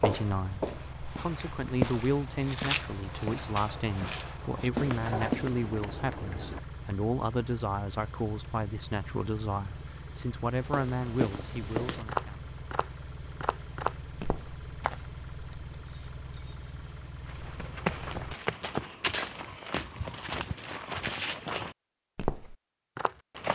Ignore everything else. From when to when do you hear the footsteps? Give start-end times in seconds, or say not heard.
0.0-5.7, 10.6-15.0, 17.2-23.5.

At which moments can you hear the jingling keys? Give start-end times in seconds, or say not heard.
4.8-6.6, 14.8-16.8.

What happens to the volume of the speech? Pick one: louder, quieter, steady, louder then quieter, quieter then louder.
steady.